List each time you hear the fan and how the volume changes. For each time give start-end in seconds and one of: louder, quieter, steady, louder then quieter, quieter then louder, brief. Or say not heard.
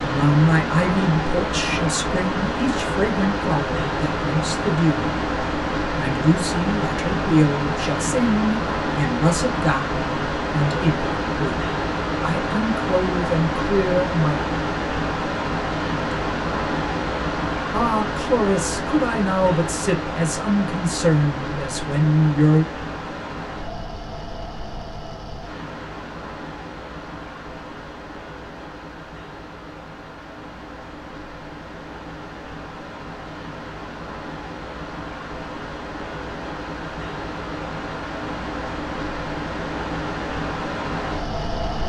0.0-41.8 quieter then louder.